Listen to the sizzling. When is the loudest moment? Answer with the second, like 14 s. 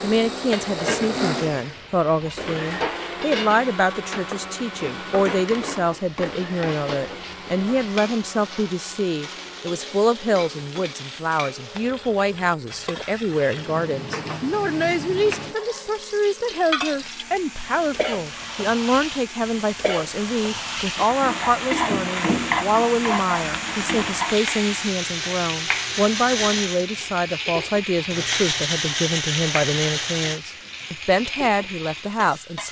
22 s.